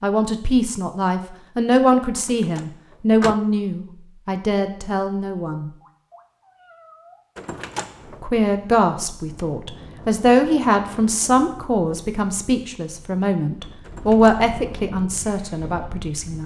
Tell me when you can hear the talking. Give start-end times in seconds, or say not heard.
0.0-5.7, 8.2-16.4.